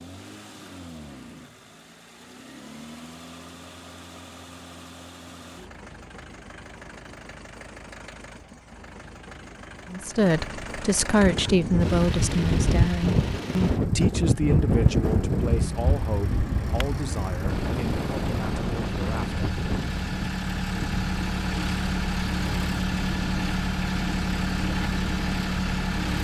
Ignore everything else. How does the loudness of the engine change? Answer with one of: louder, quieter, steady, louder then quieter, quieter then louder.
louder.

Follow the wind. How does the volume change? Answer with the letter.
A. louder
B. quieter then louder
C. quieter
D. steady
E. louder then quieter
C.